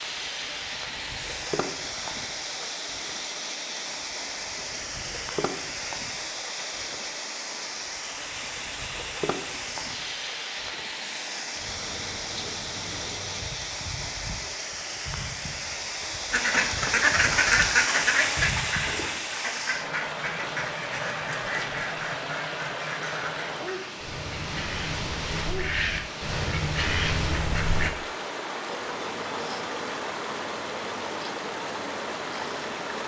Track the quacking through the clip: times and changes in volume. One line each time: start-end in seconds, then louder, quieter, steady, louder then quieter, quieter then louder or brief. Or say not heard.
16.3-27.9 quieter then louder.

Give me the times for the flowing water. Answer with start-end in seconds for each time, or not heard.
0.0-33.0.